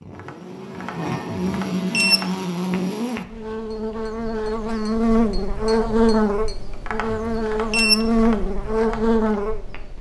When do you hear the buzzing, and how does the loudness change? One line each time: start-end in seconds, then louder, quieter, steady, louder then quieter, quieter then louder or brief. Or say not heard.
0.0-9.9 louder.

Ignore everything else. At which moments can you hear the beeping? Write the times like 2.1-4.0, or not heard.
1.3-2.2, 7.0-8.1.